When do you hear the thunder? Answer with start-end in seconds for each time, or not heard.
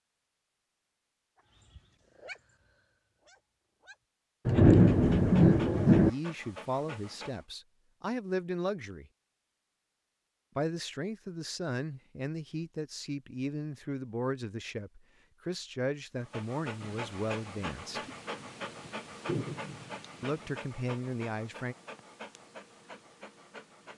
4.5-6.1, 16.8-20.5.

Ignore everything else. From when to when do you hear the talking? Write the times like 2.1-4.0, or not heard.
5.5-9.1, 10.6-18.1, 20.2-21.8.